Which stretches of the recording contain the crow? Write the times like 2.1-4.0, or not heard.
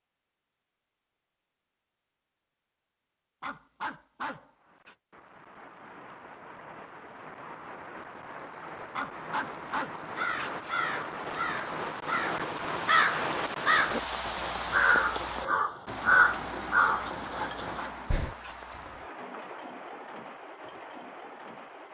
10.2-18.4.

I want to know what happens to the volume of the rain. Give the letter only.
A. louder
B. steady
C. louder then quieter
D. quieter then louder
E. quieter
C.